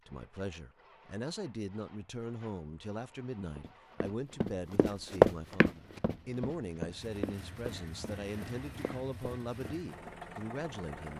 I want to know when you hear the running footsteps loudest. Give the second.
5 s.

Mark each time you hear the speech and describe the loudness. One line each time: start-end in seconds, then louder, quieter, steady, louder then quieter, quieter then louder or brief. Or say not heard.
0.1-11.1 steady.